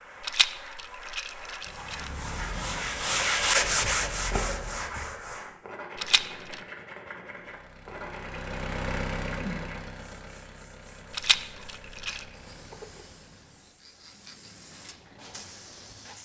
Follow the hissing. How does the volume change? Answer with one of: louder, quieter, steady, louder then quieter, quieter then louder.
quieter then louder.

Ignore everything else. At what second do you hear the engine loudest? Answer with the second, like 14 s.
9 s.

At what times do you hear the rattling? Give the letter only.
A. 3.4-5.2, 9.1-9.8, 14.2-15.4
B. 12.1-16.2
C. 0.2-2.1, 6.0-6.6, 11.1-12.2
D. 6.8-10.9
C.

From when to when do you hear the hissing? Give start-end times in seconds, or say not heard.
12.1-16.2.